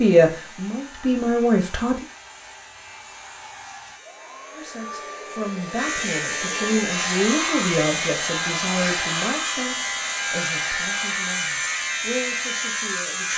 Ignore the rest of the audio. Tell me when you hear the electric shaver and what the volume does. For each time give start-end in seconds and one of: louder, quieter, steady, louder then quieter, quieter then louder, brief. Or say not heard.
0.0-13.3 louder.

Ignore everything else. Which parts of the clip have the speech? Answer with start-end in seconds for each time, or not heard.
0.0-2.0, 4.5-13.3.